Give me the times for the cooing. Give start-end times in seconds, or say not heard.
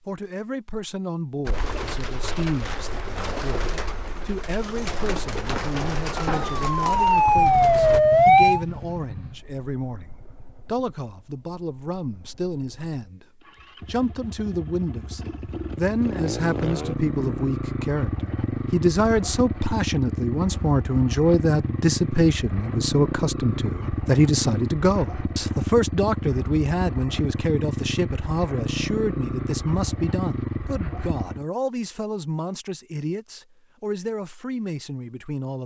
1.4-8.0.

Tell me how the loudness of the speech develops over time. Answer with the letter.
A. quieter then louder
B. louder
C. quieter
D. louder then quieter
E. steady
D.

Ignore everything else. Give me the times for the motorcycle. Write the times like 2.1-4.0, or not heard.
7.2-31.4.